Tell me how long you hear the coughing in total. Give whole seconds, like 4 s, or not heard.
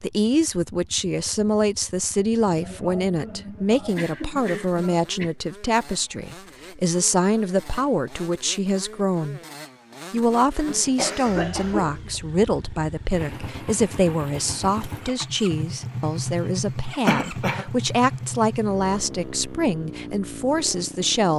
5 s.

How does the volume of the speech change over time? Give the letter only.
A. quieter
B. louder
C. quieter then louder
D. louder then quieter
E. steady
E.